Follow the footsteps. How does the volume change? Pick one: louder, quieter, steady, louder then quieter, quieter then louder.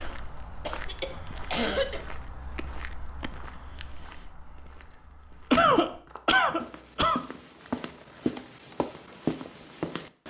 quieter then louder.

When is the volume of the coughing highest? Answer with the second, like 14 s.
6 s.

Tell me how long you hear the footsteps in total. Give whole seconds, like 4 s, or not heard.
10 s.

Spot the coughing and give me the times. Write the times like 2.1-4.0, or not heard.
0.7-2.0, 5.5-7.2.